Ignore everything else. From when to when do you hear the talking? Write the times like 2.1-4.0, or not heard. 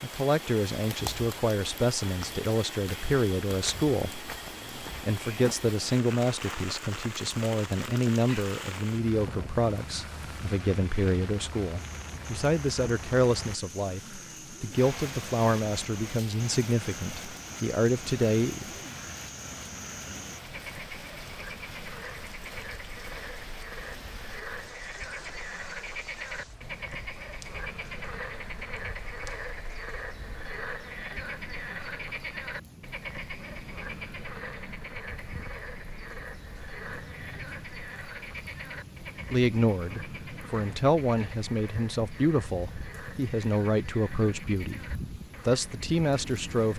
0.0-18.6, 39.3-46.7.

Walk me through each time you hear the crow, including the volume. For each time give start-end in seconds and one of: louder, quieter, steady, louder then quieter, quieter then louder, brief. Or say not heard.
not heard.